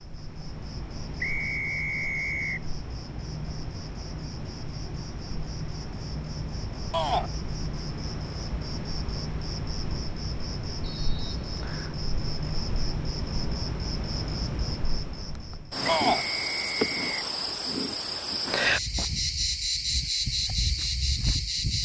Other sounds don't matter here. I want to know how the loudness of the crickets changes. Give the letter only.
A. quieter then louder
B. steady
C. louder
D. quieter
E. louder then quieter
C.